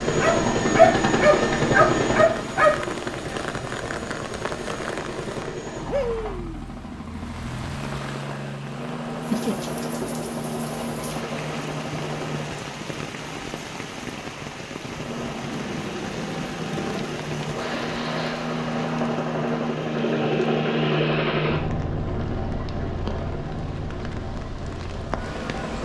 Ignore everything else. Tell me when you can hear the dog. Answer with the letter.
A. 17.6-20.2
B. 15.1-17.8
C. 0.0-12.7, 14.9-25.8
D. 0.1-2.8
D.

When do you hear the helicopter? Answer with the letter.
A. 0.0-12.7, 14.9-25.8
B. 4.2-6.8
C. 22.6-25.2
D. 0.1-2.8
A.